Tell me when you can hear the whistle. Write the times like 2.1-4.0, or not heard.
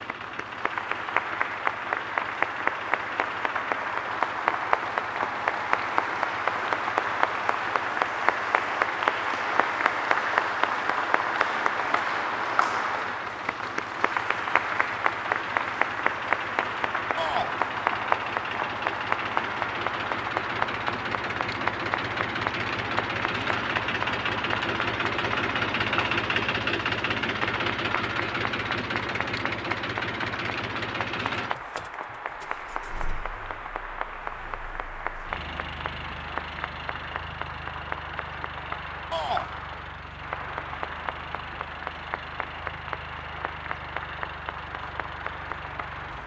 not heard.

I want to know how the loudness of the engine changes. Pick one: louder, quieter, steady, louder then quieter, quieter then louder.
louder then quieter.